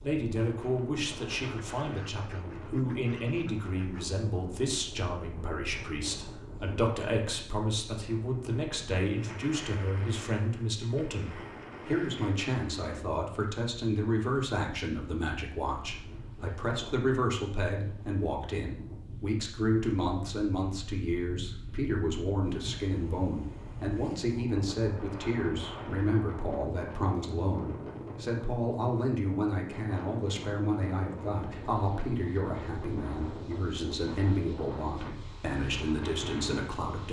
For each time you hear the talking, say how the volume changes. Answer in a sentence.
The talking can be heard from 0.0 to 37.0 s, at a steady volume.